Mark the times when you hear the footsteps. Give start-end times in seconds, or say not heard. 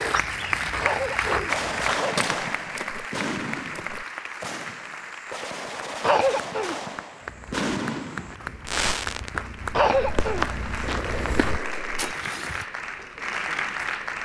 0.0-4.0, 7.2-12.7.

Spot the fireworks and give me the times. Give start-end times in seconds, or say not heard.
1.4-12.2.